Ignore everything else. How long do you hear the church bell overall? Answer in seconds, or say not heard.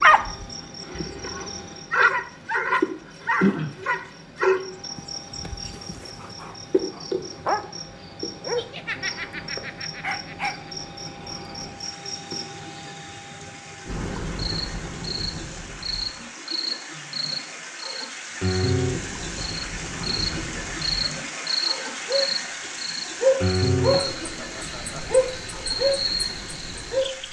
not heard.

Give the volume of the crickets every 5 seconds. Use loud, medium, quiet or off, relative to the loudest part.
loud, medium, medium, loud, loud, loud.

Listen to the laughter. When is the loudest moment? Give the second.
9 s.